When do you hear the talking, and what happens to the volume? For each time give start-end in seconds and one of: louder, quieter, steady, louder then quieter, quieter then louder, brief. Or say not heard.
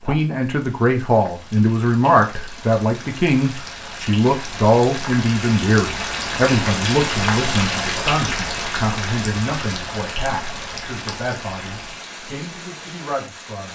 0.1-13.6 quieter.